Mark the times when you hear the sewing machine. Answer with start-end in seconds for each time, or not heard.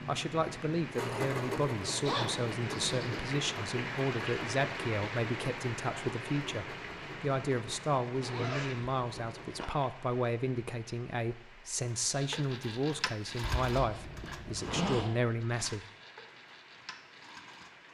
0.0-9.8, 12.1-17.9.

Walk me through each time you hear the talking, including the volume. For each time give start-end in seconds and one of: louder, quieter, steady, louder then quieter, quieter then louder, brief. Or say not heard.
0.1-15.8 steady.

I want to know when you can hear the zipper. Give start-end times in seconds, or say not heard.
2.0-3.2, 8.2-9.7, 13.4-15.1.